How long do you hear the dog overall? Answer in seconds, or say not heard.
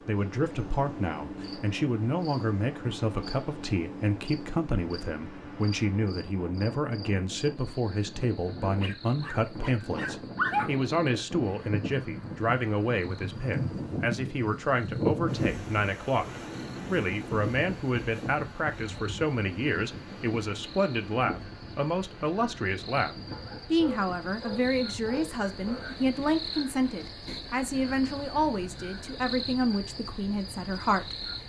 5 s.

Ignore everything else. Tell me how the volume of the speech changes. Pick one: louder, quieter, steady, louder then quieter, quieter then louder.
steady.